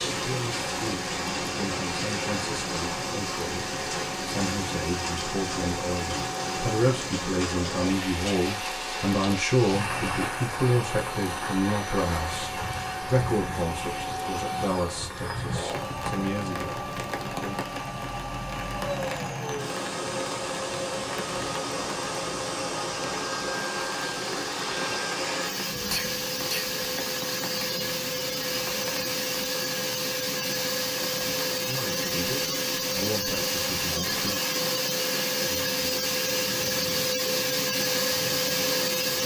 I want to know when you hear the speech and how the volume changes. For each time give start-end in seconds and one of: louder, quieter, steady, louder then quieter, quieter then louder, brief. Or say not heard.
0.1-17.6 louder then quieter
31.6-34.4 brief.